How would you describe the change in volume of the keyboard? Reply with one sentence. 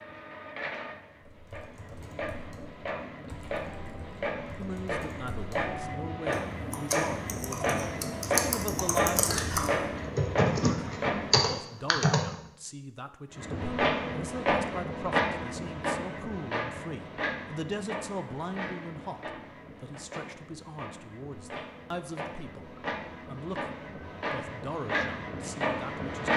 The loudness of the keyboard goes up.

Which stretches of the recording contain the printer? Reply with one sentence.
You can hear the printer from 0.0 to 11.6 s and from 13.3 to 26.3 s.